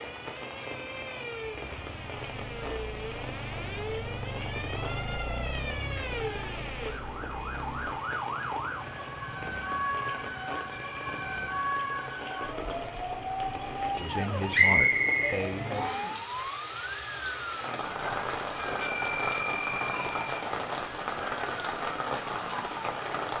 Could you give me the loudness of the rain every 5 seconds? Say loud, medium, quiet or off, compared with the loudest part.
medium, medium, medium, loud, loud.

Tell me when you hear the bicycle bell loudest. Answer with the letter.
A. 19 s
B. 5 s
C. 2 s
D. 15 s
A.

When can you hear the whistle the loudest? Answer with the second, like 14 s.
15 s.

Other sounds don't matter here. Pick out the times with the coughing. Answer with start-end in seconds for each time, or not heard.
not heard.